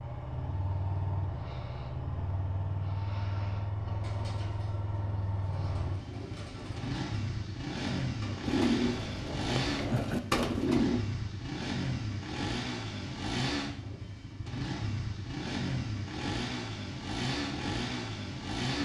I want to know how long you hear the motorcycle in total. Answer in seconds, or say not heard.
19 s.